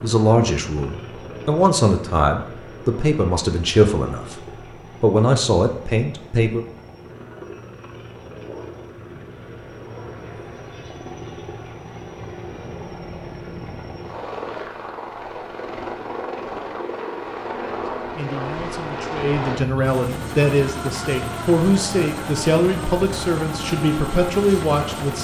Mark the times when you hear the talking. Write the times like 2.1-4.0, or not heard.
0.0-6.7, 18.1-25.1.